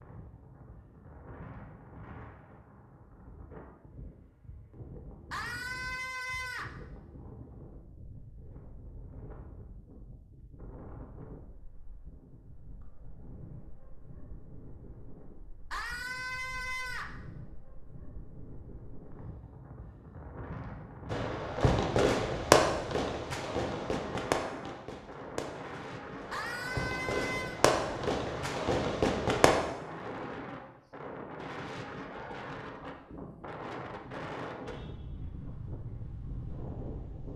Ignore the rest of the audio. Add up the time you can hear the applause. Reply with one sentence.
You can't hear the applause here.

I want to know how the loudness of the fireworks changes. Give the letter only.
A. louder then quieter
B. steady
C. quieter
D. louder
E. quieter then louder
E.